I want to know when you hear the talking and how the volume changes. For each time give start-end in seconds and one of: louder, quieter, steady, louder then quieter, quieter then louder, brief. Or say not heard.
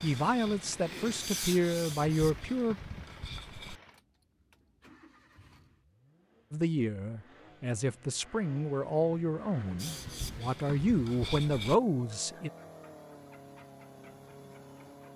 0.0-2.8 brief
6.5-12.5 louder.